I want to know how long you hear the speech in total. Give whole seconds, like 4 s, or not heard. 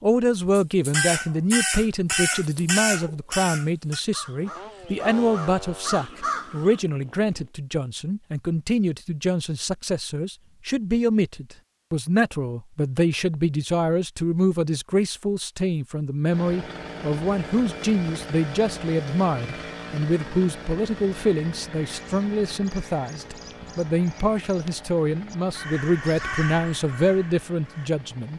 28 s.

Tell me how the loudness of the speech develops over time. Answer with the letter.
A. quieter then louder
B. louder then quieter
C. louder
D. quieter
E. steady
E.